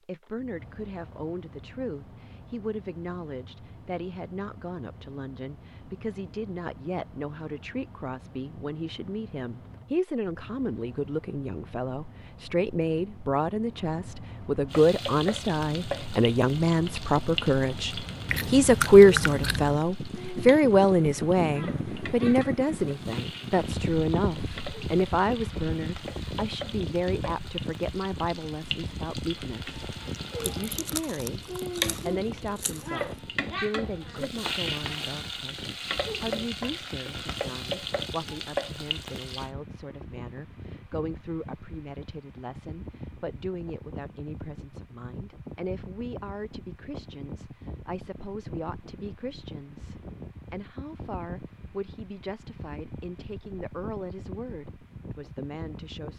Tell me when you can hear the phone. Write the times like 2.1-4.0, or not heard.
not heard.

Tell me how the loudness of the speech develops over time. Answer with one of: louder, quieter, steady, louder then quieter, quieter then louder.
louder then quieter.